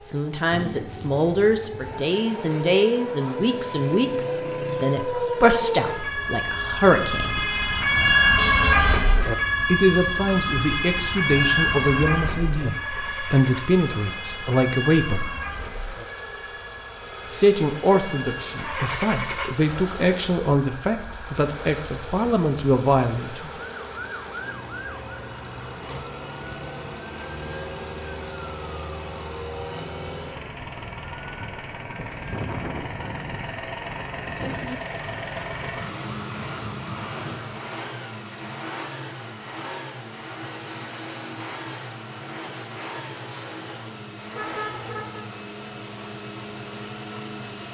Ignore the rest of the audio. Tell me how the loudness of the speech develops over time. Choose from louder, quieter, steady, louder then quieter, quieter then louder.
steady.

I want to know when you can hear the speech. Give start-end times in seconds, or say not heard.
0.0-7.5, 9.7-15.4, 17.3-23.5.